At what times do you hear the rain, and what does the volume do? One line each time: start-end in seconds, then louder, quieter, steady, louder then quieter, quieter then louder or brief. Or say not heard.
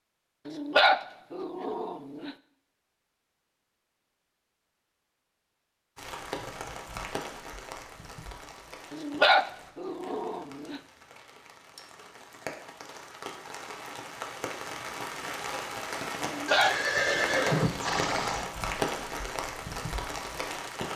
6.0-20.9 quieter then louder.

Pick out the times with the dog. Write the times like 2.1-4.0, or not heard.
0.5-2.4, 8.9-10.8, 16.2-17.9.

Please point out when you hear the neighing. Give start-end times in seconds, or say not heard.
16.4-18.5.